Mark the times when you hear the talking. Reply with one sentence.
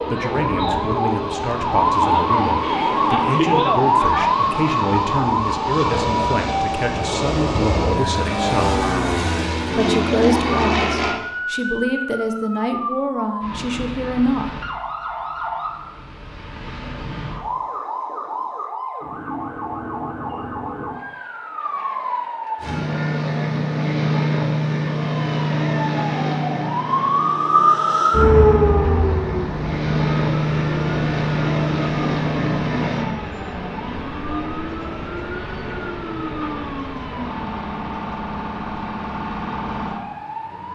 You can hear the talking from 0.1 to 8.8 s and from 9.8 to 14.6 s.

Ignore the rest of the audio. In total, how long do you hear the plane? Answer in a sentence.
The plane can be heard for 22 seconds in total.